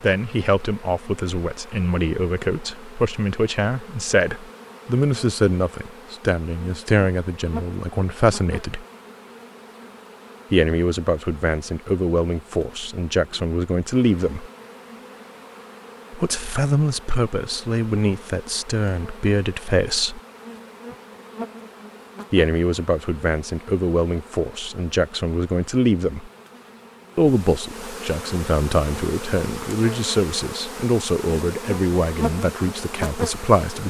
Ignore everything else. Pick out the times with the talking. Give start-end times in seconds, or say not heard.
0.0-8.8, 10.5-14.5, 16.1-20.2, 22.3-26.3, 27.1-33.8.